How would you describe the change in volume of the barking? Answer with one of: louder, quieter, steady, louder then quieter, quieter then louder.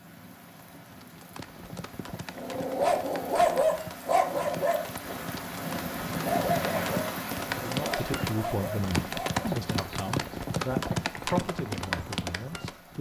quieter.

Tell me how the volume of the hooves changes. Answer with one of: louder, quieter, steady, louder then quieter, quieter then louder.
louder.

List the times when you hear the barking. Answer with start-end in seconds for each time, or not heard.
2.3-9.4.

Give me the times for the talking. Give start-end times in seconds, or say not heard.
7.5-12.9.